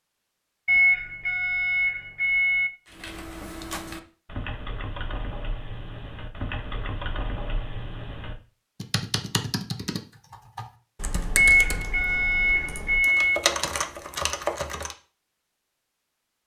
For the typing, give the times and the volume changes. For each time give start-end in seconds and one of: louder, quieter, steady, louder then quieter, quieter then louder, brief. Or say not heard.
2.9-14.9 louder.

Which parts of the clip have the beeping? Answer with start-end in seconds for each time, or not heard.
0.7-2.7, 11.3-13.4.